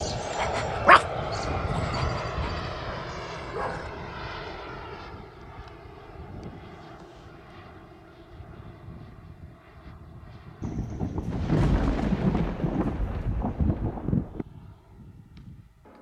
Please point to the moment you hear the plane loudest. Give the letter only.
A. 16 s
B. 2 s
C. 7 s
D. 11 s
B.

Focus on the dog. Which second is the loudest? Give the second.
1 s.